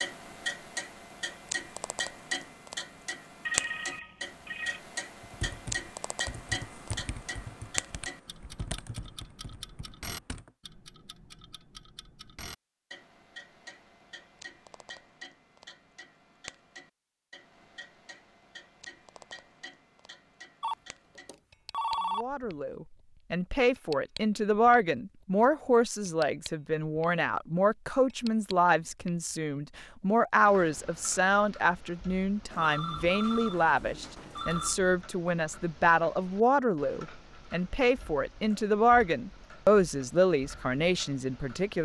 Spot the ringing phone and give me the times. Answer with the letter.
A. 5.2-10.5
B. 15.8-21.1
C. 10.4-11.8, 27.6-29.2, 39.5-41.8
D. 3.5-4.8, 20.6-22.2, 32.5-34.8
D.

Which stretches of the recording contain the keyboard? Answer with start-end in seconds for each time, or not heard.
5.2-10.5.